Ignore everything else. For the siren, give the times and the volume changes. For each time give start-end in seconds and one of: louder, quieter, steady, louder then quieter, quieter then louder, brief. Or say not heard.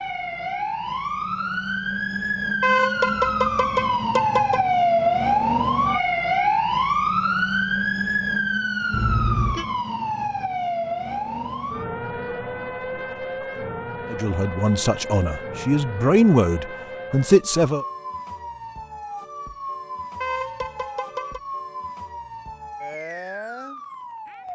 0.0-24.5 quieter.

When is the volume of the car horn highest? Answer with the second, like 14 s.
3 s.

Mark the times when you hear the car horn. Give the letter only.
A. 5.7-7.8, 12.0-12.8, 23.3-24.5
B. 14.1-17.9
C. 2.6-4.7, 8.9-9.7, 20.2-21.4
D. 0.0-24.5
C.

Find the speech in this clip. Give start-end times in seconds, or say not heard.
14.1-17.9.